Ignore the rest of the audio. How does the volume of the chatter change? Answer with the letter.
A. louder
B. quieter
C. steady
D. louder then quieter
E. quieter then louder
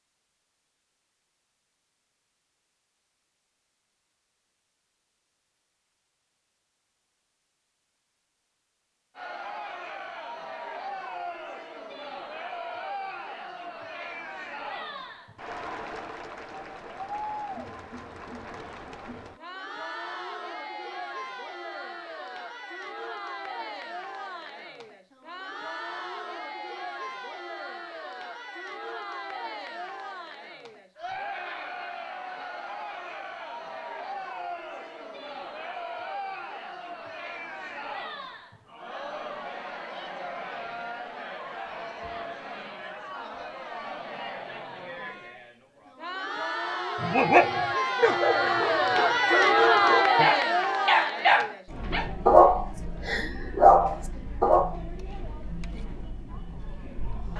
A.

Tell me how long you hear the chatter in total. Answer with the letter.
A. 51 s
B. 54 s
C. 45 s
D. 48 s
D.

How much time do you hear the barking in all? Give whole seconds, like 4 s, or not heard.
8 s.